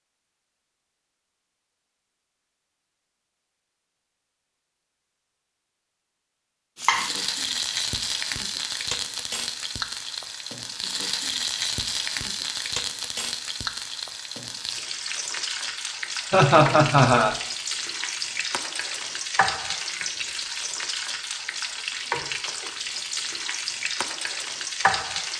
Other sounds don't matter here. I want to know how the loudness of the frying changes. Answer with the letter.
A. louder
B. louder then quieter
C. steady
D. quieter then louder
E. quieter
C.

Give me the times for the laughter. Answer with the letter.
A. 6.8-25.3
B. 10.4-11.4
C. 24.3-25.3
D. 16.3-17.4
D.